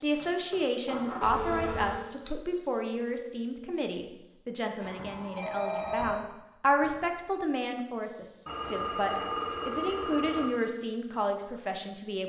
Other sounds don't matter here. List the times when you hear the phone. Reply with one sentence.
The phone can be heard from 1.2 to 1.9 s, from 4.8 to 6.2 s and from 8.4 to 10.4 s.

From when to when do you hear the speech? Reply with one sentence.
You can hear the speech from 0.0 to 12.2 s.